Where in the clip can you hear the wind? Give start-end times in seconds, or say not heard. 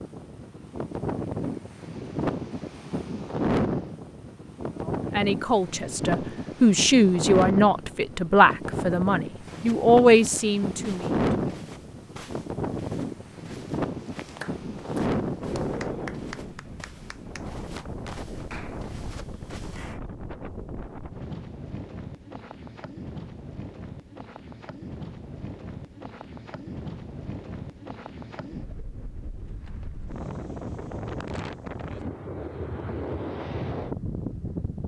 0.0-34.8.